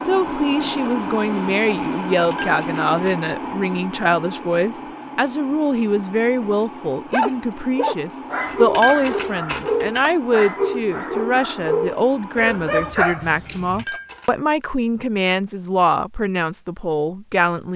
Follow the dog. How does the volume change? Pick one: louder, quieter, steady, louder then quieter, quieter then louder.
steady.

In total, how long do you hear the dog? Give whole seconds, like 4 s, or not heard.
7 s.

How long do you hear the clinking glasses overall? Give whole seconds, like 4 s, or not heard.
3 s.